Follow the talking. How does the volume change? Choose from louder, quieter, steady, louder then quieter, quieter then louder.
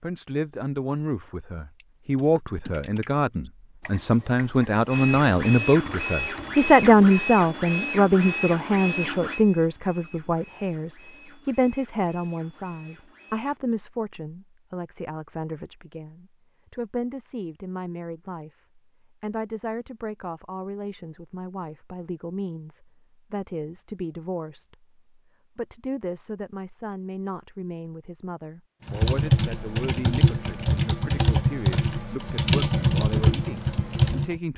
quieter.